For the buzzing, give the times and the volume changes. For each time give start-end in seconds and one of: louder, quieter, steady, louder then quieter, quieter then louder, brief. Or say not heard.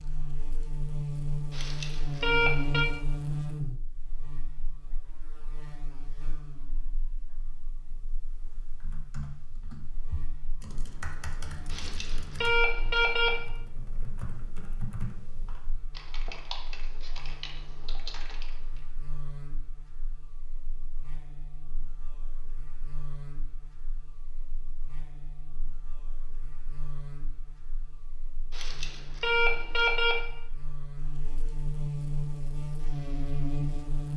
0.0-34.1 quieter then louder.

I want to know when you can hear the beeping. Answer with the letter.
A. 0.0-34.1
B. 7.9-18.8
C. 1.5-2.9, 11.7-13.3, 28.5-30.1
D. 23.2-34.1
C.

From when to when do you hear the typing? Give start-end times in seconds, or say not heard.
7.9-18.8.